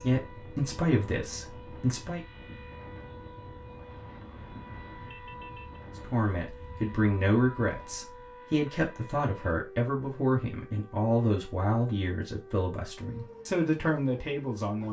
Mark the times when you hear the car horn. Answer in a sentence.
You can hear the car horn from 4.3 to 5.8 s.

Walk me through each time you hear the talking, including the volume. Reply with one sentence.
The talking can be heard briefly from 0.0 to 2.2 s; and from 6.0 to 14.8 s, at a steady volume.